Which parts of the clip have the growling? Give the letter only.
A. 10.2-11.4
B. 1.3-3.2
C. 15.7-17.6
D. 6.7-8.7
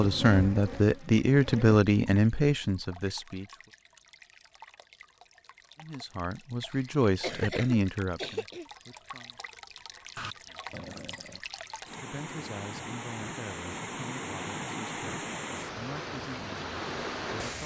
A.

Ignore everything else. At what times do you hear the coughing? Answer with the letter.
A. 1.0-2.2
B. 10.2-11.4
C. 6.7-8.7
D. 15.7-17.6
C.